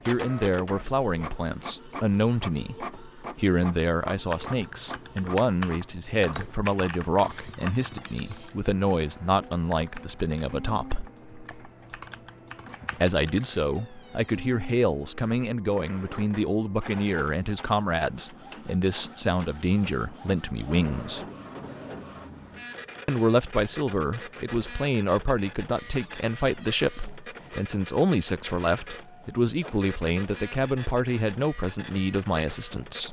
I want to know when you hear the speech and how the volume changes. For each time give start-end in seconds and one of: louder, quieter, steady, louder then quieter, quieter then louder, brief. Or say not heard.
0.1-11.1 steady
12.9-21.2 steady
23.1-33.0 steady.